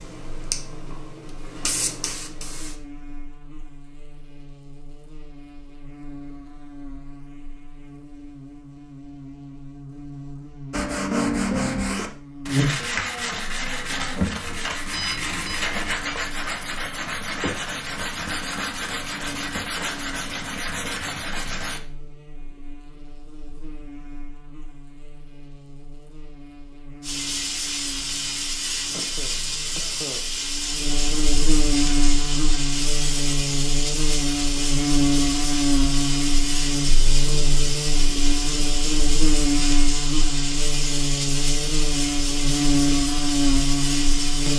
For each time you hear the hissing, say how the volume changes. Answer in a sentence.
The hissing can be heard briefly from 0.0 to 2.8 s; and from 27.0 to 44.5 s, at a steady volume.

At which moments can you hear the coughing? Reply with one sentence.
The coughing can be heard from 28.9 to 30.3 s.